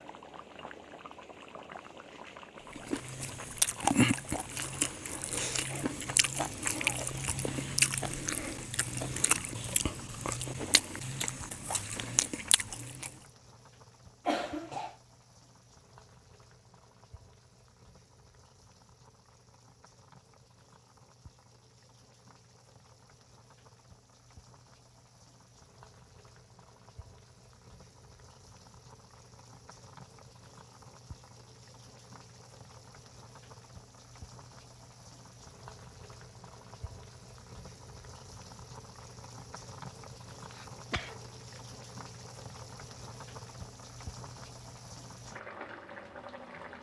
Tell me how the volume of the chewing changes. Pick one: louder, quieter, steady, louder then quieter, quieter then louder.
quieter.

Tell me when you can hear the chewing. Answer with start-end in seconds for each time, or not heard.
2.8-13.1.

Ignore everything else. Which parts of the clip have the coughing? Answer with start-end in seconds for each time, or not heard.
14.2-14.9, 40.5-41.6.